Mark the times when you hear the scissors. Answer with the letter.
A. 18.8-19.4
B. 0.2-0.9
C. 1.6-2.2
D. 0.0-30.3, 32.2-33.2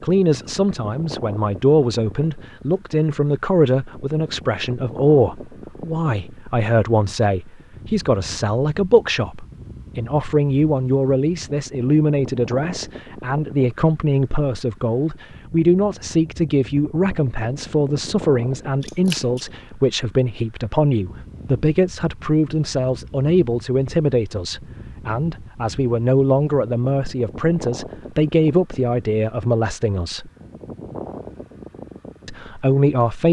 A.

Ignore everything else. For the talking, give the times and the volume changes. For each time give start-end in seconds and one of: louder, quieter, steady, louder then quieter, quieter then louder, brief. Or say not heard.
0.0-30.3 steady
32.2-33.2 brief.